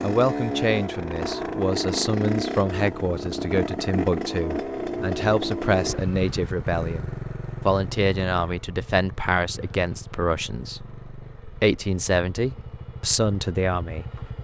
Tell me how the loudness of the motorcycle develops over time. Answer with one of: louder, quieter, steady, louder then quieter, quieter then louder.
quieter.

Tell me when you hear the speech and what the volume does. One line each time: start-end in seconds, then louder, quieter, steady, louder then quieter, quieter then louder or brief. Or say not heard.
0.0-14.3 steady.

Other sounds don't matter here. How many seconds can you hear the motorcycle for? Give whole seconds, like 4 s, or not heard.
14 s.